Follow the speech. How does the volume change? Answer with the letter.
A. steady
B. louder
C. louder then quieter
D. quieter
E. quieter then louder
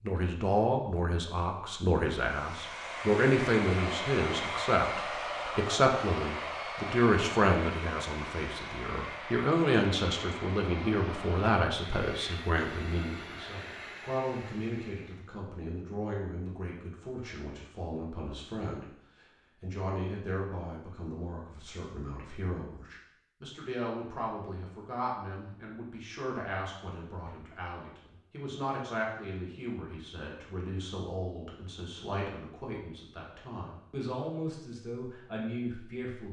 D.